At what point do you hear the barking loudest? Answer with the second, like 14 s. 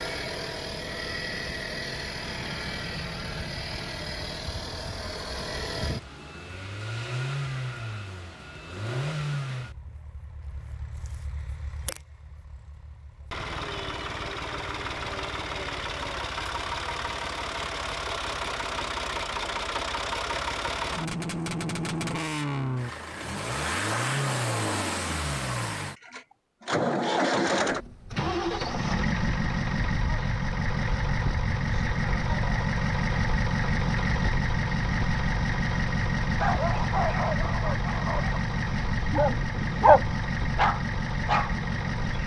40 s.